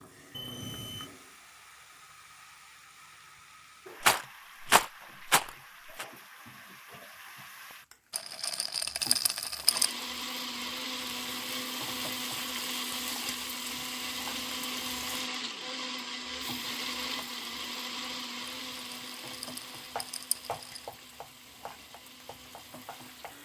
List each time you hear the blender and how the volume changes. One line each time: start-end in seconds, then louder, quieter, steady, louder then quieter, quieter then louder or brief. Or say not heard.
9.7-23.3 quieter.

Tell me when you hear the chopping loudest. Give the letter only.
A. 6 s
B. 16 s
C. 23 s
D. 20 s
D.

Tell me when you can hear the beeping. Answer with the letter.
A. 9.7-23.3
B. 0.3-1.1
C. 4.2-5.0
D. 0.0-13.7
B.